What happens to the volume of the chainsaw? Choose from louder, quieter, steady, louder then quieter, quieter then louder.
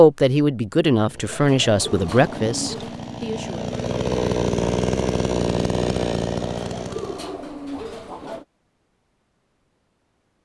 louder.